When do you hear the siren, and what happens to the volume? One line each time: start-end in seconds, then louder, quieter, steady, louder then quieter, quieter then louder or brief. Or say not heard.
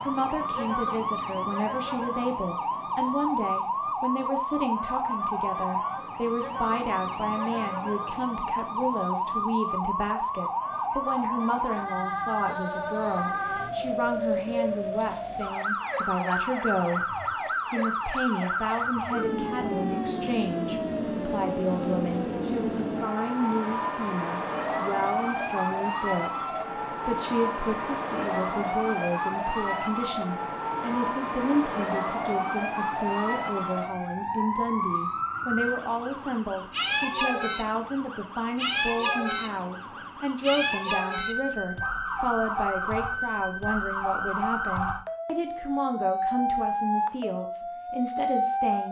0.0-48.8 steady.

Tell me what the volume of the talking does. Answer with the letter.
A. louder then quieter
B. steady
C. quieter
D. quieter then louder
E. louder
B.